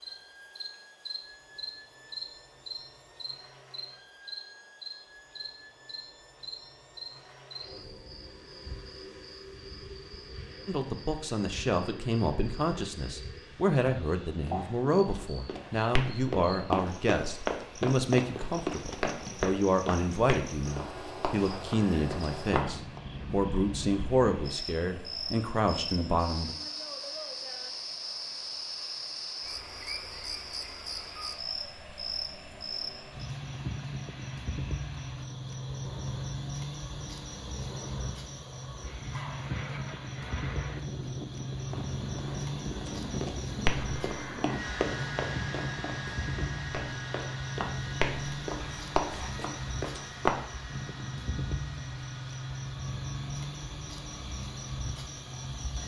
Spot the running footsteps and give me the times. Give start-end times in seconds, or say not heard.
14.4-23.0, 41.7-50.4.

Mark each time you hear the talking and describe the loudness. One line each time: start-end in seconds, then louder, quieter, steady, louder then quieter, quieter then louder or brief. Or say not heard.
10.7-26.6 steady.